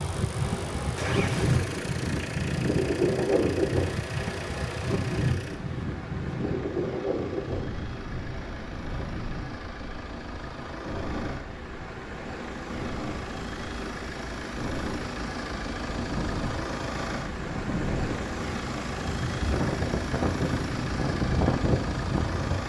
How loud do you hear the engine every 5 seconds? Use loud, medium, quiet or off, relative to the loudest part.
loud, medium, loud, loud, loud.